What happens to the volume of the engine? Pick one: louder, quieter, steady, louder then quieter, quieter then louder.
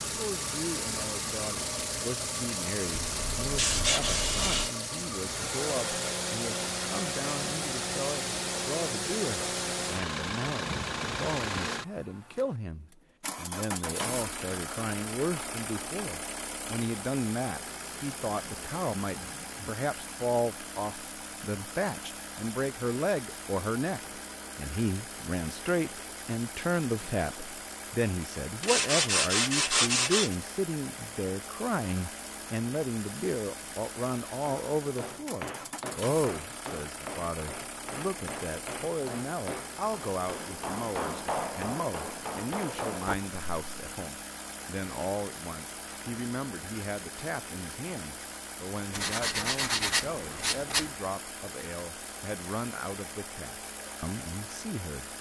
quieter.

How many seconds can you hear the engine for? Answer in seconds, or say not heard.
55 s.